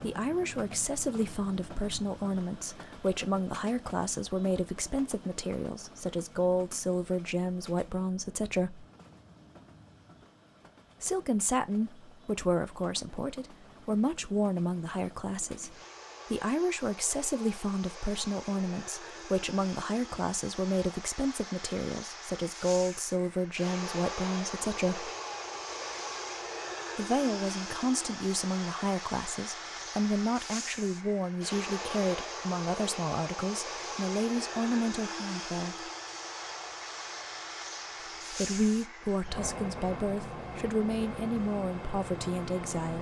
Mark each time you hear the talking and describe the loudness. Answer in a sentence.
The talking can be heard from 0.0 to 8.8 s, at a steady volume; from 11.0 to 25.1 s, at a steady volume; from 26.9 to 35.9 s, at a steady volume; and from 38.3 to 42.9 s, at a steady volume.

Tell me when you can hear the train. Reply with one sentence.
You can hear the train from 0.0 to 42.9 s.